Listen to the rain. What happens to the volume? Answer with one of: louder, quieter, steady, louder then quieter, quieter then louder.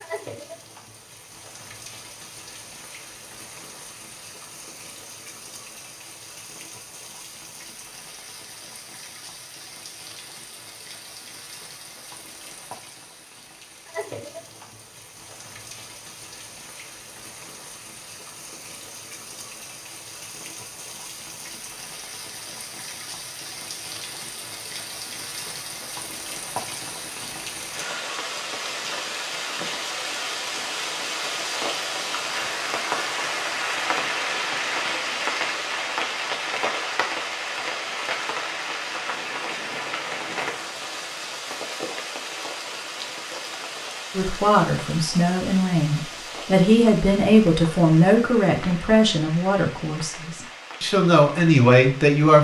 louder then quieter.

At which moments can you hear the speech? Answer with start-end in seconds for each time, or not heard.
44.1-52.3.